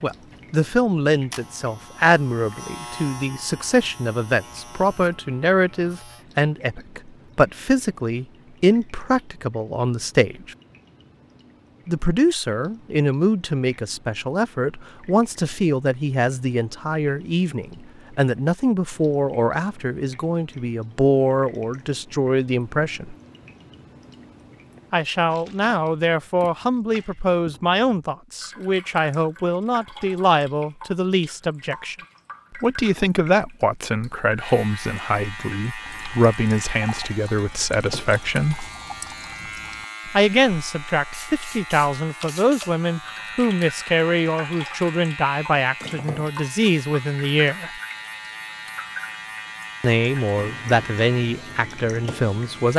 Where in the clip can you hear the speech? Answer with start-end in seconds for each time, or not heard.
0.0-10.6, 11.8-23.1, 24.9-31.9, 32.6-38.7, 40.1-47.7, 49.8-52.7.